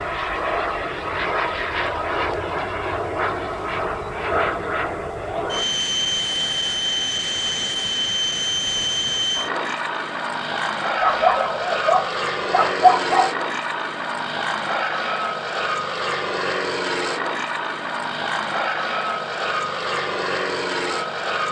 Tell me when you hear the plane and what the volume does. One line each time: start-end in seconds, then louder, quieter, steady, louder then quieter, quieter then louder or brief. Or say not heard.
0.0-21.4 steady.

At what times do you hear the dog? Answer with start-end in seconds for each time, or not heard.
11.0-13.3.